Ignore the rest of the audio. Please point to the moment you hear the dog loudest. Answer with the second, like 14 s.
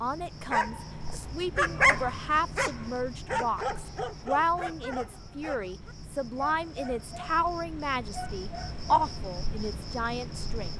2 s.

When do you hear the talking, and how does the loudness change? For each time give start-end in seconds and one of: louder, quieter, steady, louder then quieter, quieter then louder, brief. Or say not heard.
0.0-10.7 steady.